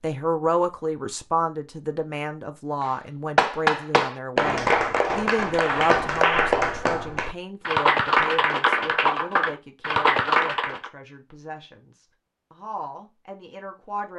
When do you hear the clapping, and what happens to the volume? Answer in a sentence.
You can hear the clapping from 2.8 to 10.9 s, at a steady volume.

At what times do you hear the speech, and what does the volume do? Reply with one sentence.
You can hear the speech from 0.0 to 14.1 s, getting quieter.